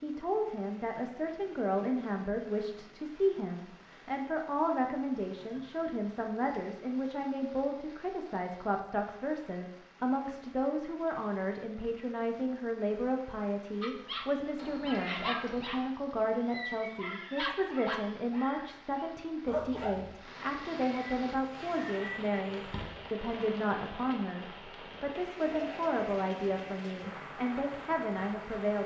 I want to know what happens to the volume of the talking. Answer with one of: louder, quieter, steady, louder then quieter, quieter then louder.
steady.